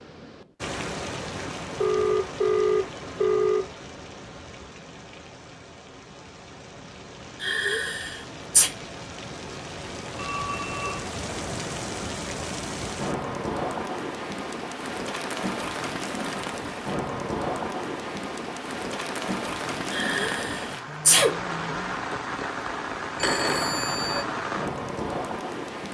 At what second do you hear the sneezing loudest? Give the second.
21 s.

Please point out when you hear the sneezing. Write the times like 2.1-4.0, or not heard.
7.4-8.7, 19.9-21.4.